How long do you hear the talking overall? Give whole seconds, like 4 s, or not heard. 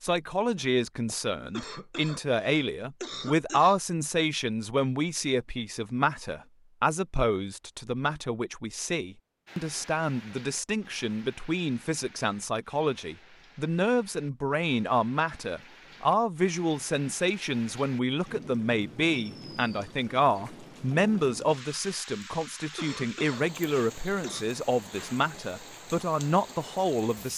27 s.